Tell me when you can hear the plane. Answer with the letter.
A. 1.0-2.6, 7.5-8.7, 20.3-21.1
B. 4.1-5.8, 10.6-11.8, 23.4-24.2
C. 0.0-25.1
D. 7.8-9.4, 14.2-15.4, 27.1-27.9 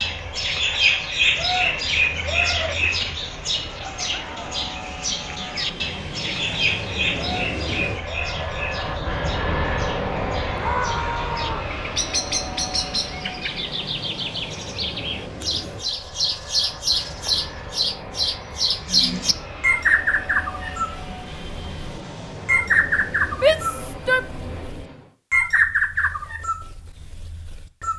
C.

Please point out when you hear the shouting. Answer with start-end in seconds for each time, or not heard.
4.1-5.8, 10.6-11.8, 23.4-24.2.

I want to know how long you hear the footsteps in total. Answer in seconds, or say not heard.
not heard.